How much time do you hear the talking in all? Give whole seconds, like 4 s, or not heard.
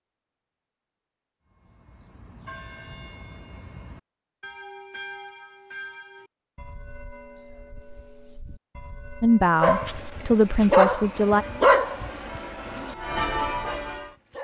2 s.